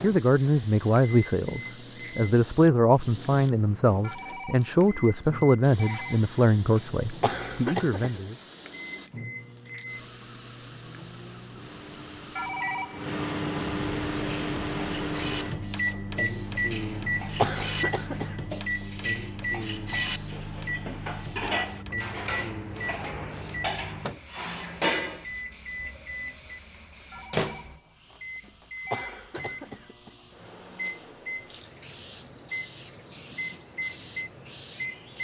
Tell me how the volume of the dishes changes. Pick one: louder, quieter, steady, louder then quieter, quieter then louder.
louder.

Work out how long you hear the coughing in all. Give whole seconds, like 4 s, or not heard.
5 s.